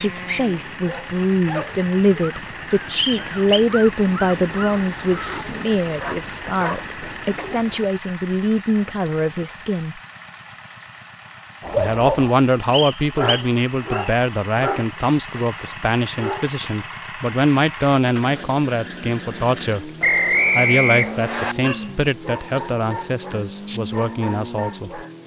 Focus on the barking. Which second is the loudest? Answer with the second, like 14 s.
12 s.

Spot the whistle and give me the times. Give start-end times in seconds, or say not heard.
3.0-3.6, 12.7-14.1, 20.0-21.6.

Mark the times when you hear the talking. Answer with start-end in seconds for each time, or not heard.
0.0-10.0, 11.8-19.9, 20.6-25.0.